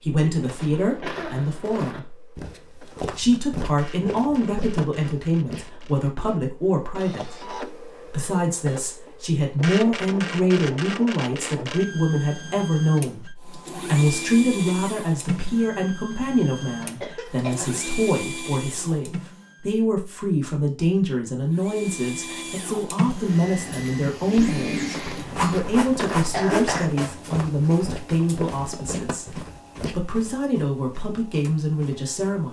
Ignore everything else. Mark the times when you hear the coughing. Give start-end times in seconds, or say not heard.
0.2-2.0, 16.8-17.8, 25.1-26.9.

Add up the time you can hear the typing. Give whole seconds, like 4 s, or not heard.
not heard.